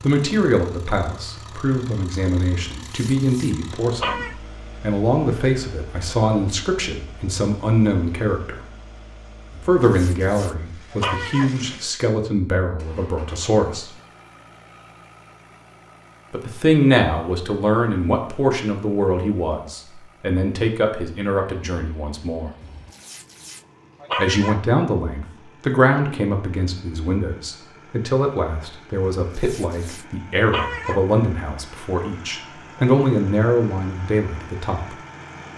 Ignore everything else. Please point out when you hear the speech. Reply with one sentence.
The speech can be heard from 0.0 to 8.6 s, from 9.7 to 13.9 s, from 16.3 to 22.5 s and from 24.1 to 35.0 s.